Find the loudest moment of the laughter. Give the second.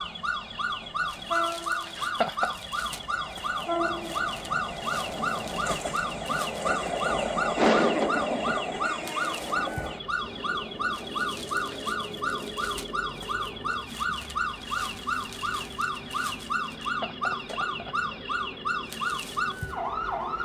8 s.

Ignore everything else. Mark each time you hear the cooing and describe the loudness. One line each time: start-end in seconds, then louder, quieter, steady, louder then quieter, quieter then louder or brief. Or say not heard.
not heard.